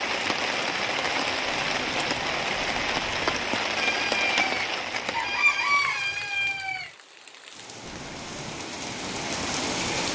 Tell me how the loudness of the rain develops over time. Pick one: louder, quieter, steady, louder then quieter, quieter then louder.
quieter then louder.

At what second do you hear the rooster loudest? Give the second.
6 s.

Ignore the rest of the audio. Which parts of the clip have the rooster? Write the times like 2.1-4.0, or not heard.
3.8-6.9.